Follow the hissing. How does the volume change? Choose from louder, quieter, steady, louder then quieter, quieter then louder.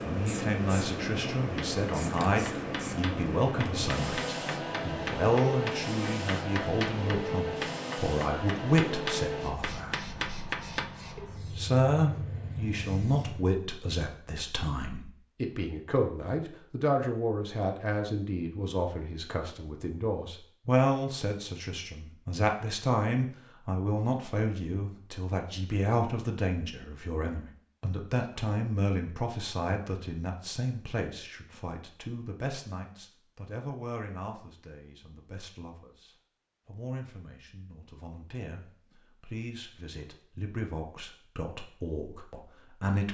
quieter.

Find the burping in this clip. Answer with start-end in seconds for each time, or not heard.
not heard.